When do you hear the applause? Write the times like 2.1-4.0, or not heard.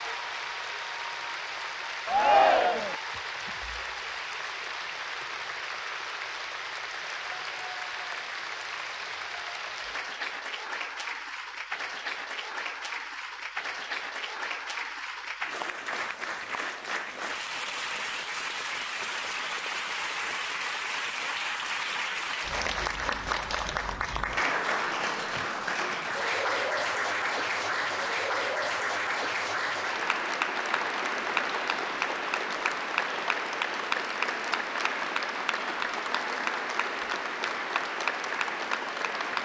0.0-39.4.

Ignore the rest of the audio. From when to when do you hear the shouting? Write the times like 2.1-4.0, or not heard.
2.0-3.0.